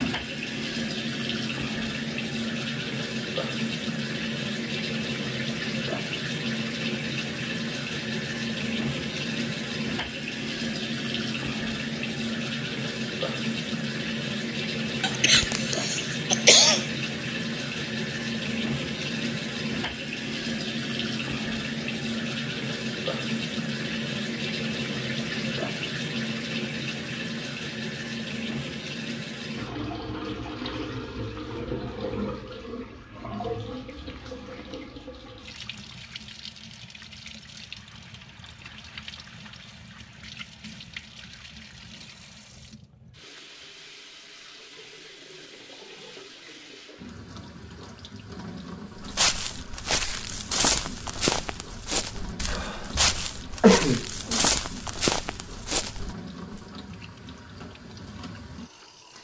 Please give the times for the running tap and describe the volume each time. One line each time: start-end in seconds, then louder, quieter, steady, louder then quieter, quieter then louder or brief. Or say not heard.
0.0-59.1 quieter.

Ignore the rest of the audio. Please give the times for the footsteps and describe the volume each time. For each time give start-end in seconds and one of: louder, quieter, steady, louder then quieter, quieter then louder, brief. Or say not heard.
49.0-56.6 steady.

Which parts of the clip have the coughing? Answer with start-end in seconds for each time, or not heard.
15.0-16.9, 52.5-54.5.